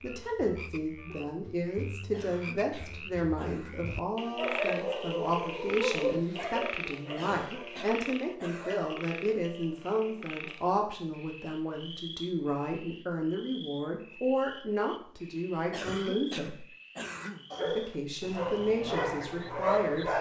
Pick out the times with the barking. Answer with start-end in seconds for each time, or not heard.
4.3-8.9, 17.5-20.1.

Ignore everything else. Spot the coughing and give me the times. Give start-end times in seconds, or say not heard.
2.1-3.9, 7.2-8.9, 15.7-17.4.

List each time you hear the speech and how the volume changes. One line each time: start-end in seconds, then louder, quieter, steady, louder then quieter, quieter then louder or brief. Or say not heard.
0.0-16.6 steady
17.6-20.1 brief.